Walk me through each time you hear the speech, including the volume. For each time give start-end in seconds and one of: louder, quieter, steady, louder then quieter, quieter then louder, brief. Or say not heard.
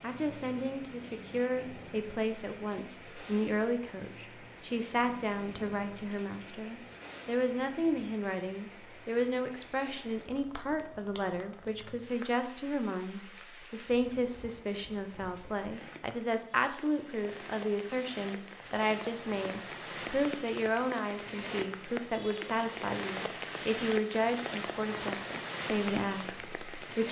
0.0-27.0 steady.